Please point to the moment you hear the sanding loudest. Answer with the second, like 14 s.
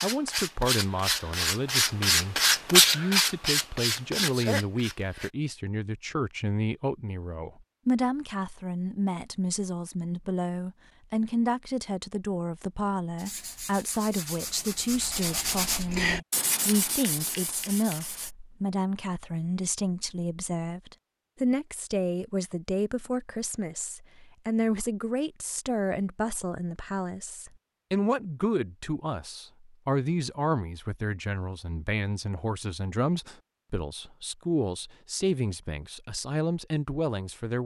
3 s.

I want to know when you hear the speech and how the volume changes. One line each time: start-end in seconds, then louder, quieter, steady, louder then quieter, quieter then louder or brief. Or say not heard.
0.0-37.6 steady.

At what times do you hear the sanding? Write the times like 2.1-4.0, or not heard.
0.0-5.3, 13.2-18.4.